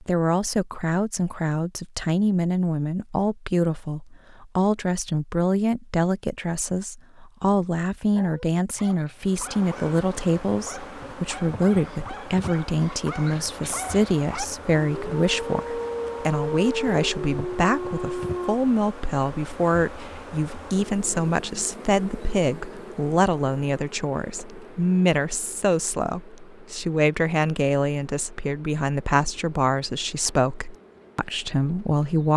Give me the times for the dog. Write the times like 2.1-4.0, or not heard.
8.1-18.6.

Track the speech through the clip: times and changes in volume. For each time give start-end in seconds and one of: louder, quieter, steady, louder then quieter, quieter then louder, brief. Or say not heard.
0.0-32.3 steady.